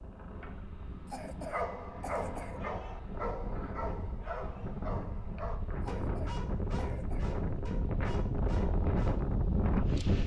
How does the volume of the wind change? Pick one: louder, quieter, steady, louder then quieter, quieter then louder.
louder.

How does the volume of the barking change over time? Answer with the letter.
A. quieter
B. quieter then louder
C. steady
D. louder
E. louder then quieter
A.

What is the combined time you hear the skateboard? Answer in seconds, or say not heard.
not heard.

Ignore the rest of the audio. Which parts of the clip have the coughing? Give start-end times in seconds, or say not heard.
1.1-2.6, 5.8-7.3.